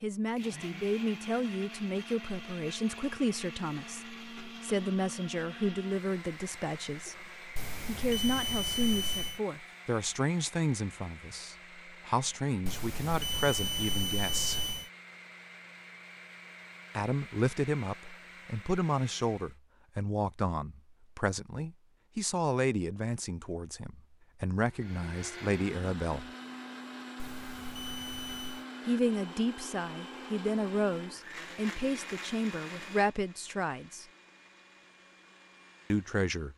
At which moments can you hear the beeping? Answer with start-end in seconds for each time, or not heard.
7.5-9.4, 12.7-14.9, 27.1-28.6.